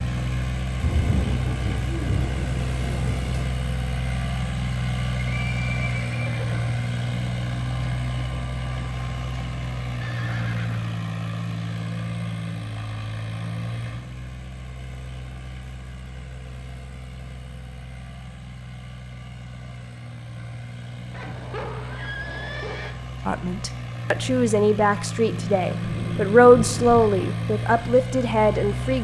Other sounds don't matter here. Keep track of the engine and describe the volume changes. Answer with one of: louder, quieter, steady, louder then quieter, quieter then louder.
quieter then louder.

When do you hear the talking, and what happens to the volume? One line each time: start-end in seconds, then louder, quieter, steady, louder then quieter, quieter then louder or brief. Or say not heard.
23.2-28.9 louder then quieter.